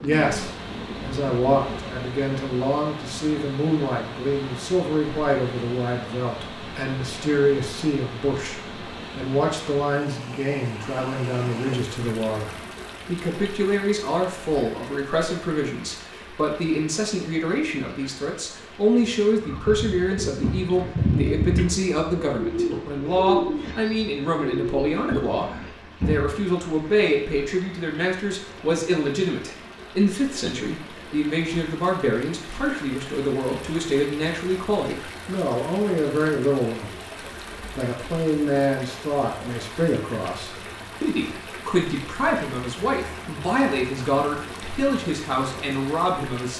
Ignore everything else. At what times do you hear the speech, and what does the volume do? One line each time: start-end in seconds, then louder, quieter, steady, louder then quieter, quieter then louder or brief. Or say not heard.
0.0-46.5 steady.